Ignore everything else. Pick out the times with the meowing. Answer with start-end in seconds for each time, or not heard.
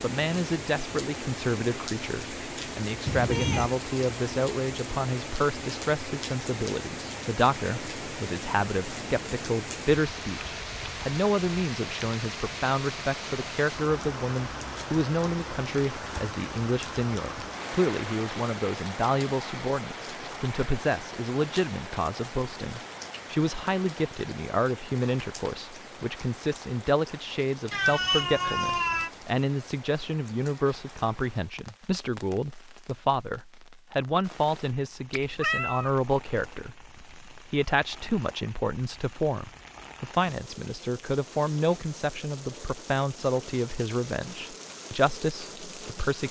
3.0-3.7, 27.7-29.1, 35.1-36.7.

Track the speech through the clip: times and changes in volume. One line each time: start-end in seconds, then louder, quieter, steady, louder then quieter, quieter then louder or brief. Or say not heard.
0.0-46.2 steady.